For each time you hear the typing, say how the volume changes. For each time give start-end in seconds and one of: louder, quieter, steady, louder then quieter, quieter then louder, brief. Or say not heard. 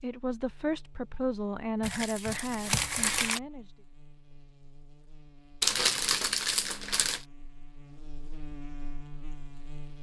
not heard.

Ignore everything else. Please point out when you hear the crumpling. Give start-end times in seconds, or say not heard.
1.8-3.4, 5.6-7.2.